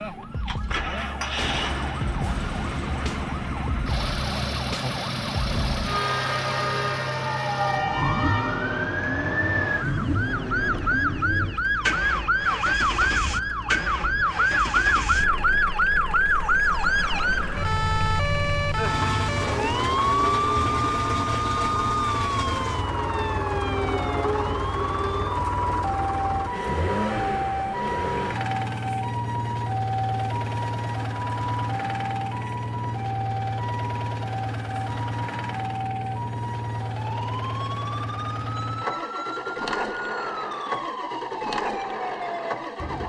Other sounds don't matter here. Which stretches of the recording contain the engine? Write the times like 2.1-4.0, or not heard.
0.0-43.0.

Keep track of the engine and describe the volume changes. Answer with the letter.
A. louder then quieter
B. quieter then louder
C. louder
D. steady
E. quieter
D.